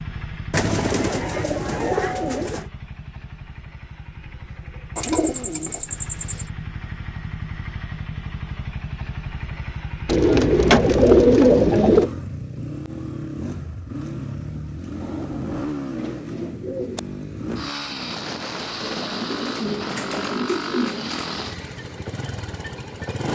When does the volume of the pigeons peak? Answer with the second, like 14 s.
11 s.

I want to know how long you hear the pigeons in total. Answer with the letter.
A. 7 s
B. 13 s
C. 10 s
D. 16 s
C.